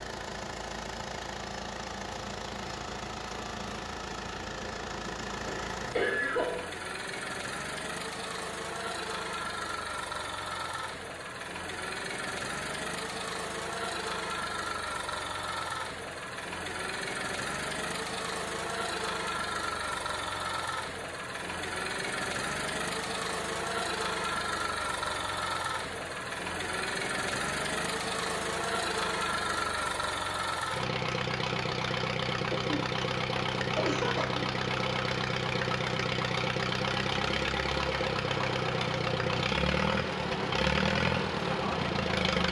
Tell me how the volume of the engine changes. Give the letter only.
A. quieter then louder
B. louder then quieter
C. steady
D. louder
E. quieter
D.